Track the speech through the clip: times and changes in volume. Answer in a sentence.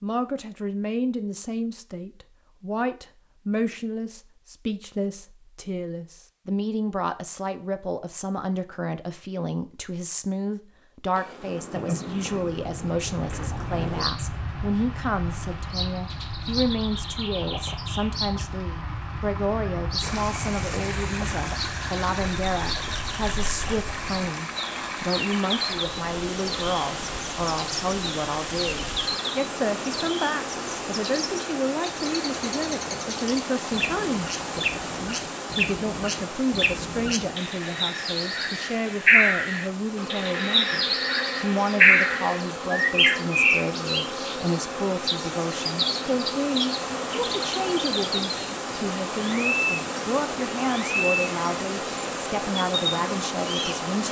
You can hear the speech from 0.0 to 54.0 s, at a steady volume.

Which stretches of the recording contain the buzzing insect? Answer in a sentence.
You can hear the buzzing insect from 11.1 to 14.1 s and from 40.0 to 54.0 s.